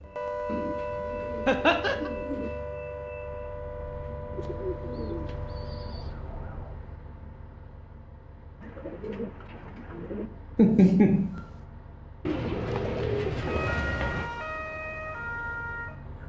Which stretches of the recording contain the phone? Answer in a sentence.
You can't hear the phone here.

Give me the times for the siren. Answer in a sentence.
The siren can be heard from 0.0 to 6.8 s and from 13.3 to 16.2 s.